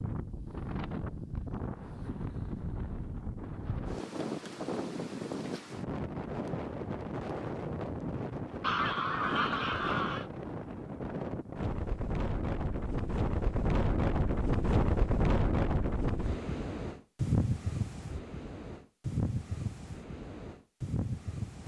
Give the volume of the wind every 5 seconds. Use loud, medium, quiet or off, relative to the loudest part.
medium, loud, loud, loud, medium.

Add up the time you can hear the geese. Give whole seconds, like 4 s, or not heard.
2 s.